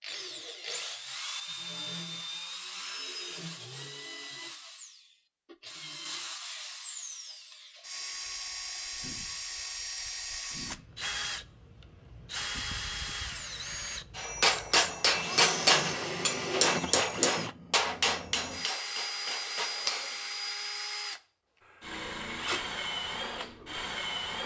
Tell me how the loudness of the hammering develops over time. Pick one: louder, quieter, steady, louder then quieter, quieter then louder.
quieter.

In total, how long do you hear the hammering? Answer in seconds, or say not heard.
6 s.